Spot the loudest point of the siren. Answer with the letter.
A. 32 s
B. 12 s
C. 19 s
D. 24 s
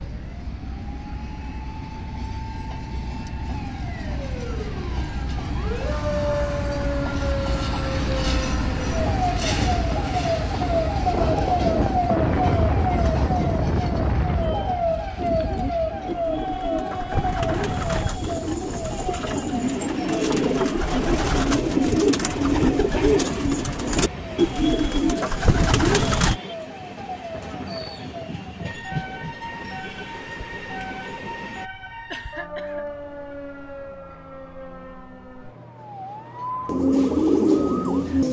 B.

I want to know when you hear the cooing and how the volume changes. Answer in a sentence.
The cooing can be heard from 15.2 to 26.4 s, getting louder; and briefly from 36.6 to 38.2 s.